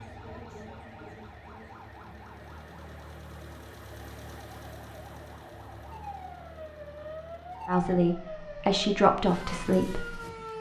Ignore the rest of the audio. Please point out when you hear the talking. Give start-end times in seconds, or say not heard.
7.7-10.2.